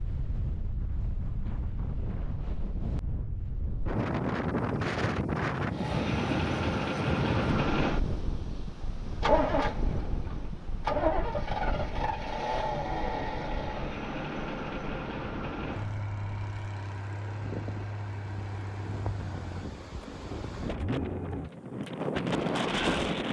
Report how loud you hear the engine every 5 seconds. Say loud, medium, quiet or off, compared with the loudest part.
off, loud, loud, medium, medium.